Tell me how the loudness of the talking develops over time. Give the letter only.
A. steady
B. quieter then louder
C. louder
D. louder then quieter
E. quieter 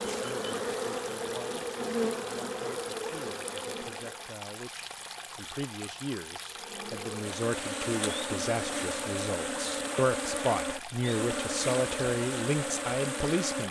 C.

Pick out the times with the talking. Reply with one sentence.
The talking can be heard from 0.0 to 13.6 s.